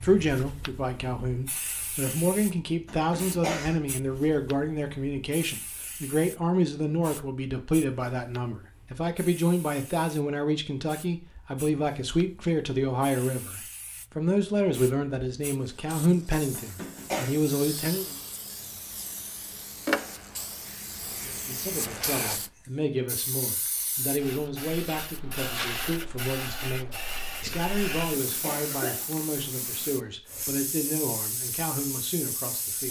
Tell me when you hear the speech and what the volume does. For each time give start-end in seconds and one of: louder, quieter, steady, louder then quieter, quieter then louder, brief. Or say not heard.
0.0-18.1 steady
21.2-32.8 steady.